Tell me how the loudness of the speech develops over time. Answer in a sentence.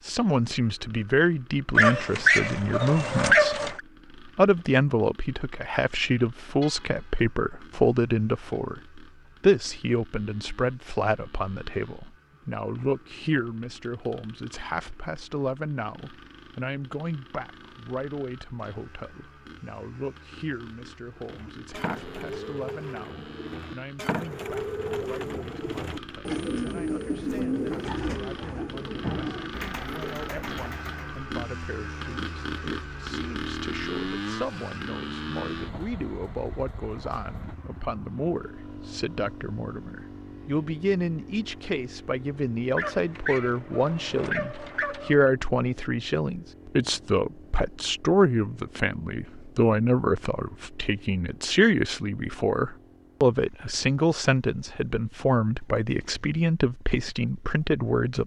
The loudness of the speech goes down, then up.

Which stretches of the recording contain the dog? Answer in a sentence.
The dog can be heard from 1.8 to 3.8 s and from 42.8 to 45.3 s.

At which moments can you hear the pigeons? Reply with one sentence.
You can hear the pigeons from 21.1 to 31.2 s.